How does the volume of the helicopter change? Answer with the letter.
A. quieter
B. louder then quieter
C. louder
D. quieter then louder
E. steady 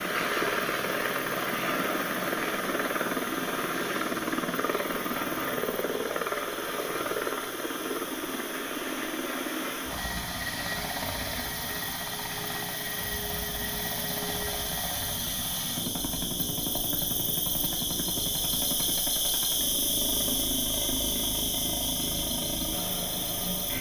A.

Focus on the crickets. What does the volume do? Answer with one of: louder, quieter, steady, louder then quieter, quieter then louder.
louder.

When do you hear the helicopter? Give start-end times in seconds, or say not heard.
0.0-23.7.